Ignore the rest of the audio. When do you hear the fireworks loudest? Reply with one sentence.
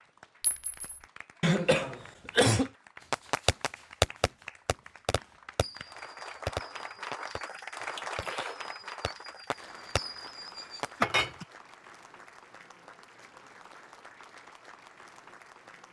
The loudest moment of the fireworks is at 4 seconds.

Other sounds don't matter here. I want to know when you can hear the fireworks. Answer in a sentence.
You can hear the fireworks from 3.1 to 10.8 s.